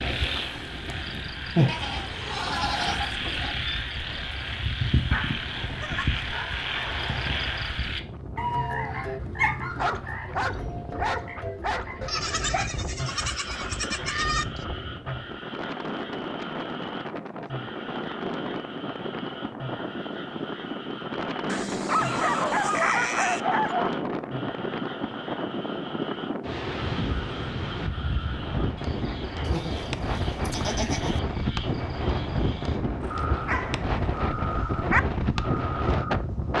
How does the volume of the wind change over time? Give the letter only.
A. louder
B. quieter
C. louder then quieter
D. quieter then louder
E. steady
A.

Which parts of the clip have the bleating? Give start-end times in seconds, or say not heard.
1.6-3.6, 12.0-14.7, 21.4-23.4, 29.4-31.2.